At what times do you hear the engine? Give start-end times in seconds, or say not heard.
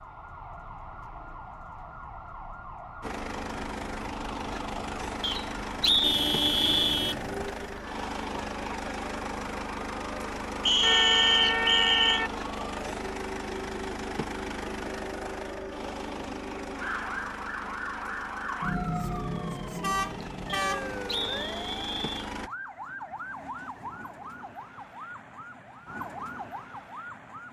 3.0-22.5.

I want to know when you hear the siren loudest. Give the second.
19 s.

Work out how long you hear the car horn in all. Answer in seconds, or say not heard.
4 s.